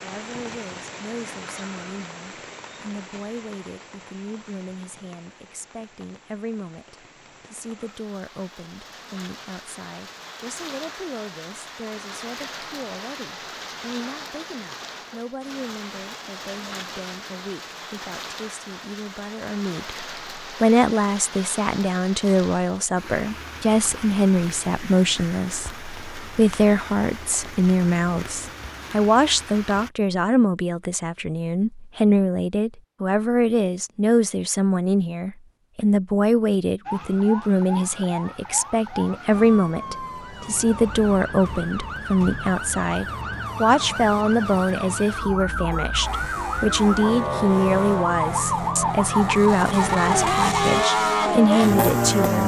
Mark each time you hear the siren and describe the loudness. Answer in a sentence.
You can hear the siren from 36.9 to 52.4 s, getting louder.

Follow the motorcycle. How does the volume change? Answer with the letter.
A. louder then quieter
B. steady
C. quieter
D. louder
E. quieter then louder
D.